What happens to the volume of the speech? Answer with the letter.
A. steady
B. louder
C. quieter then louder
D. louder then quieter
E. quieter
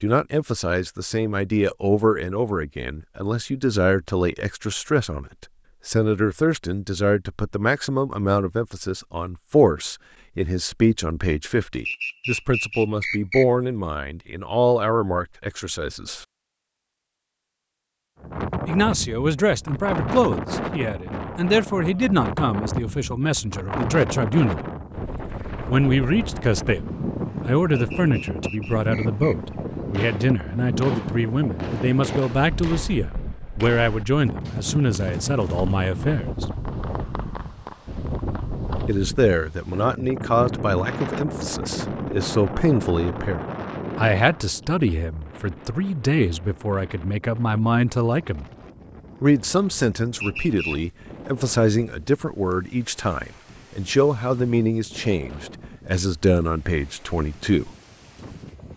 A.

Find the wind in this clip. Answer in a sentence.
The wind can be heard from 18.2 to 58.7 s.